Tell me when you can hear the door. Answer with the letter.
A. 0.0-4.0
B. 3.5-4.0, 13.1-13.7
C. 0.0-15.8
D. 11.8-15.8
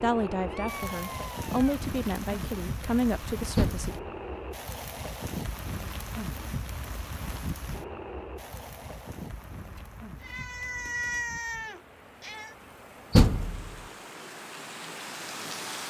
B.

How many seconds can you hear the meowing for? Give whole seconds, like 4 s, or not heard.
4 s.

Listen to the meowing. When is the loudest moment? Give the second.
11 s.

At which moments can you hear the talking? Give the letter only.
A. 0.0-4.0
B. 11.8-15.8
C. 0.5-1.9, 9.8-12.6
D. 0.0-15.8
A.